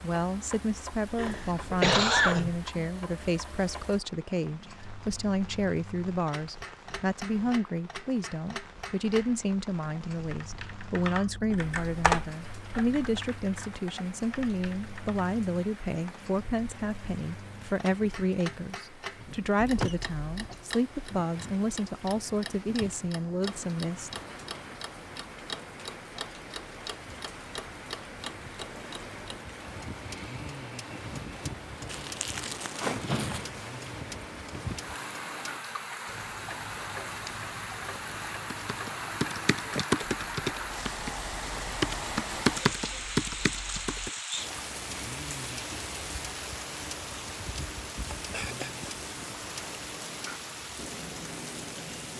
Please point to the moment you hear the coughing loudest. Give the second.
2 s.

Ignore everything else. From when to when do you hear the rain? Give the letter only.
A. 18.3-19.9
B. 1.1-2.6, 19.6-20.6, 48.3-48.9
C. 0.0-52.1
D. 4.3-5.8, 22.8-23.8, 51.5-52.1
C.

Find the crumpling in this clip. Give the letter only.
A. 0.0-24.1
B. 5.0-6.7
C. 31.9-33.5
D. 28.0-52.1
C.